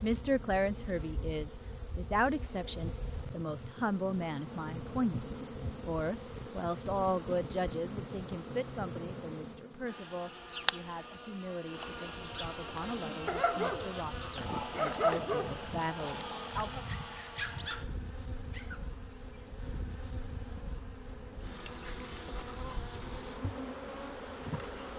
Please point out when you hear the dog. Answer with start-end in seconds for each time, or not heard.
12.9-19.7.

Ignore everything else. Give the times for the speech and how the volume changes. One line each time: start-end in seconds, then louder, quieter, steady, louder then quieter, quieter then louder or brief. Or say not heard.
0.0-16.9 quieter.